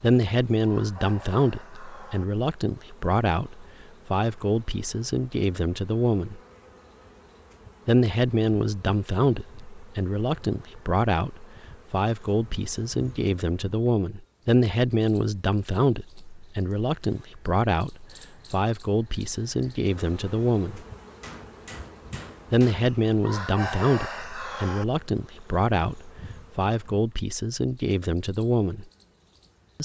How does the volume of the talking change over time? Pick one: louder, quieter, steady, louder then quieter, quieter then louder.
steady.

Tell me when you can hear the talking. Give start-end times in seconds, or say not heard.
0.0-6.4, 7.8-20.8, 22.5-28.9.